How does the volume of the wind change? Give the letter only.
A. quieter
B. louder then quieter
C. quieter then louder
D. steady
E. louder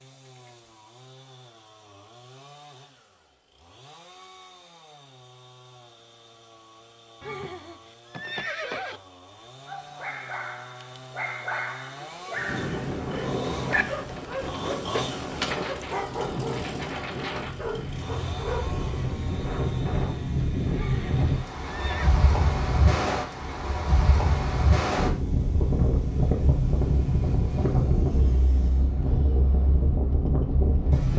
E.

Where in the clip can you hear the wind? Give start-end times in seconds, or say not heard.
12.3-31.1.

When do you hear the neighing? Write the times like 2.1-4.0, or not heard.
7.2-9.0, 20.7-22.1.